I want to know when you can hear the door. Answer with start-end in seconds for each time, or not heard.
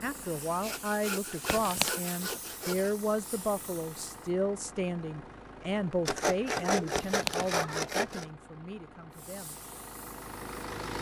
1.4-2.0, 7.0-7.5.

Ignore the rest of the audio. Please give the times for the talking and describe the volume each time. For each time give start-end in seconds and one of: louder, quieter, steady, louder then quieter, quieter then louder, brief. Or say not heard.
0.0-9.6 quieter.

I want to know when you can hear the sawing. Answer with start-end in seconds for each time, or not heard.
0.6-2.9, 6.0-8.2.